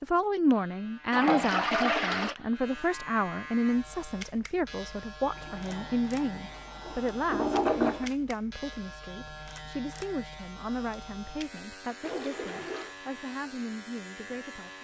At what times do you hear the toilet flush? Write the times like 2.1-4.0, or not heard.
1.1-2.4, 5.3-8.1, 12.0-12.9.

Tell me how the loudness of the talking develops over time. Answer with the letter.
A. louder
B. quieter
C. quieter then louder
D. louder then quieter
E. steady
B.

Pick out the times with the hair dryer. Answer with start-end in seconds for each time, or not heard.
not heard.